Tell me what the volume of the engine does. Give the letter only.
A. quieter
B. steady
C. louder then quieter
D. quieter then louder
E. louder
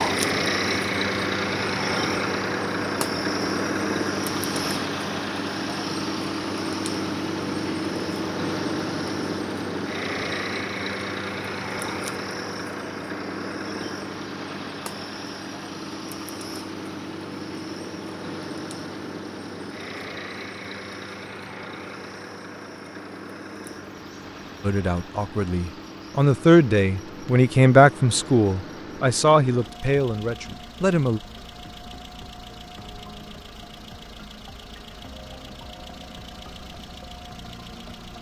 A.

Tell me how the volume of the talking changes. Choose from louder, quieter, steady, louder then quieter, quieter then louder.
louder then quieter.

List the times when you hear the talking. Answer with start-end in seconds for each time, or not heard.
24.6-31.2.